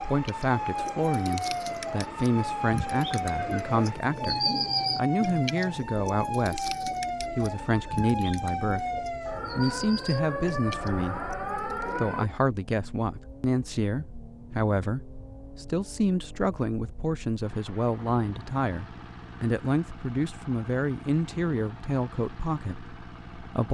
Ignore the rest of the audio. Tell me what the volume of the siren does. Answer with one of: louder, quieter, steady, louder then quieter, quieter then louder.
steady.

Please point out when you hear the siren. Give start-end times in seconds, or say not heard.
0.0-12.3.